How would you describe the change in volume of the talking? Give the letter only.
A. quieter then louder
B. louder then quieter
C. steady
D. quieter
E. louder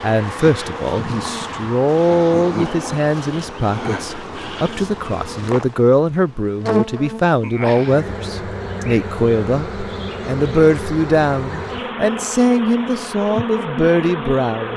C.